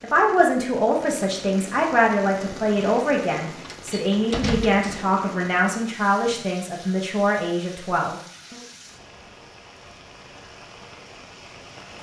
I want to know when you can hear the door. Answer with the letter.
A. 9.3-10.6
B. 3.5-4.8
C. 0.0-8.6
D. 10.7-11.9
B.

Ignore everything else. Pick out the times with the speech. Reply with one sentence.
The speech can be heard from 0.0 to 8.6 s.